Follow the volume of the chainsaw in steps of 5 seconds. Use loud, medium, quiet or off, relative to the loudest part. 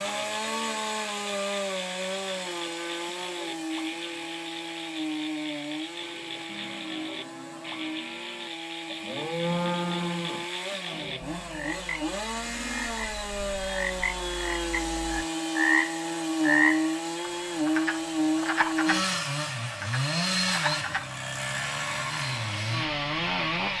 medium, medium, medium, loud, loud.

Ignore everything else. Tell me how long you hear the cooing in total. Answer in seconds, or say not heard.
not heard.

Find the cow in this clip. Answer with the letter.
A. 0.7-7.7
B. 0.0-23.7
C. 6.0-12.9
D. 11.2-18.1
C.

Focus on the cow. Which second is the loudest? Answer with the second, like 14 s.
10 s.